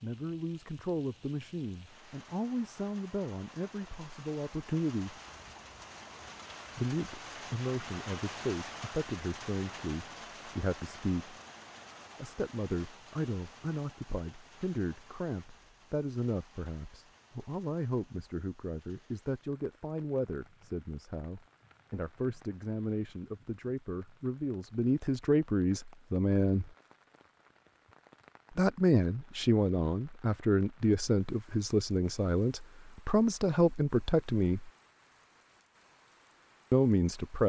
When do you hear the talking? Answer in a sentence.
The talking can be heard from 0.0 to 5.2 s, from 6.8 to 11.3 s, from 12.2 to 26.7 s, from 28.6 to 34.7 s and from 36.7 to 37.4 s.